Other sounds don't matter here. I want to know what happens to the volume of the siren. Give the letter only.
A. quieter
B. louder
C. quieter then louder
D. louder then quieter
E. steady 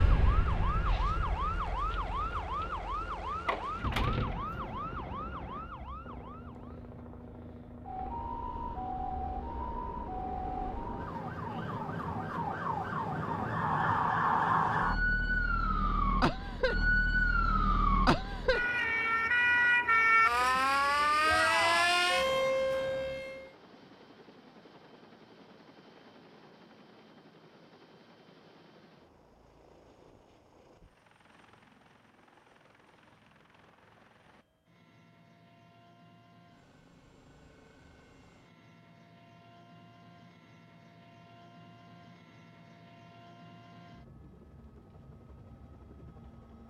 C.